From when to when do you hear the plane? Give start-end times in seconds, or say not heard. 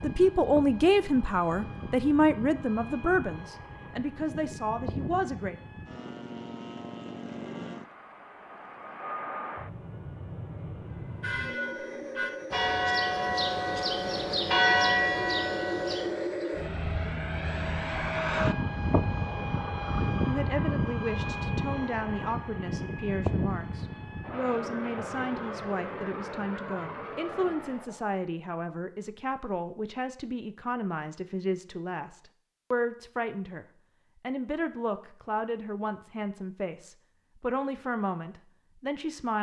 0.0-28.1.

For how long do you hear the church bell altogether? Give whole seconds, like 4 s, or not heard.
5 s.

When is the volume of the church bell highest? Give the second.
15 s.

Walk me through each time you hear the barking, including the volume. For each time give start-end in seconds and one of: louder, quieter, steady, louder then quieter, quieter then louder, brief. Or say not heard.
not heard.